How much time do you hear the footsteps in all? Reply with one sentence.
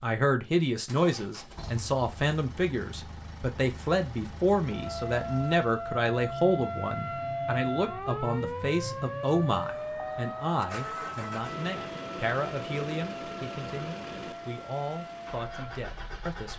You can't hear the footsteps here.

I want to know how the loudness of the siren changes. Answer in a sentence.
The loudness of the siren goes down.